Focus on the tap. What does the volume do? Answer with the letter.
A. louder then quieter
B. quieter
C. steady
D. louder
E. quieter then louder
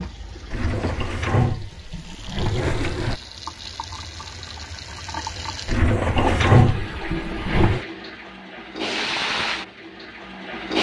D.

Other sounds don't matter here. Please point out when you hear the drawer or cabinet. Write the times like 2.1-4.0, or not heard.
0.5-3.2, 5.7-7.8.